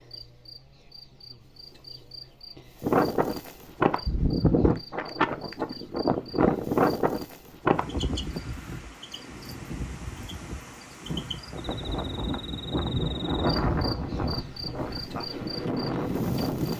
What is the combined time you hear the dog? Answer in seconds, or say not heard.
not heard.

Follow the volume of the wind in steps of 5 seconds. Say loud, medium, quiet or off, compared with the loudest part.
loud, loud, medium, medium.